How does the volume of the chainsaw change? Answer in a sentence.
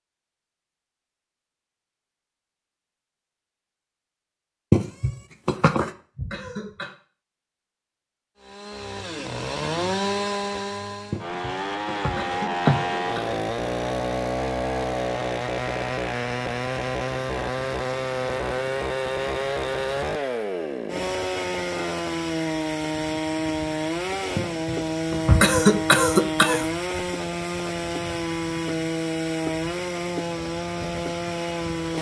The loudness of the chainsaw stays about the same.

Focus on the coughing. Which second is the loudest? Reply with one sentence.
The loudest moment of the coughing is at 26 seconds.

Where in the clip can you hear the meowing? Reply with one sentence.
You can hear the meowing from 4.7 to 5.9 s, from 11.1 to 12.8 s and from 24.4 to 26.0 s.